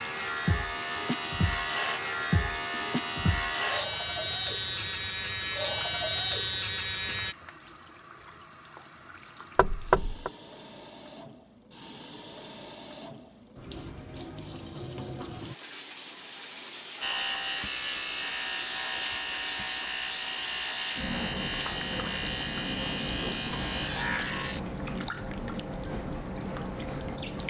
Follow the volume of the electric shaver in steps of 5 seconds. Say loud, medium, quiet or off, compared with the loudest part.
loud, loud, off, medium, medium, off.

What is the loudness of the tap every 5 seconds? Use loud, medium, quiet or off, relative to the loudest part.
medium, quiet, medium, loud, loud, loud.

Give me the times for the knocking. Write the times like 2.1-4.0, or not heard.
9.6-10.3.